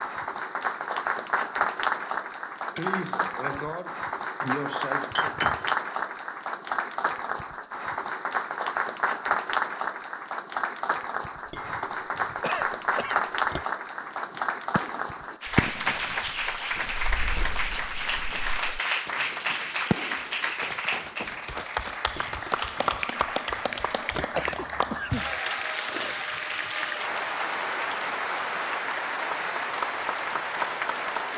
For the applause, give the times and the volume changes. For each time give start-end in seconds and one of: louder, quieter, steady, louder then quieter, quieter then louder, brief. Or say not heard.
0.0-31.3 steady.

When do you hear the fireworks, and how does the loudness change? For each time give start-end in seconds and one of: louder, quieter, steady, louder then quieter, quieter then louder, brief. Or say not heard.
13.9-21.6 quieter then louder.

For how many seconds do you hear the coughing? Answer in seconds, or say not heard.
4 s.